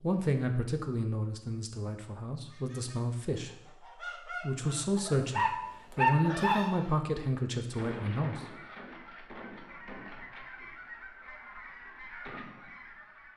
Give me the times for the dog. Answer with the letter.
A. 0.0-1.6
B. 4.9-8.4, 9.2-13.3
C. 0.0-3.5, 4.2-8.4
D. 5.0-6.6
D.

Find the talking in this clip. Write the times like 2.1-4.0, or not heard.
0.0-3.5, 4.2-8.4.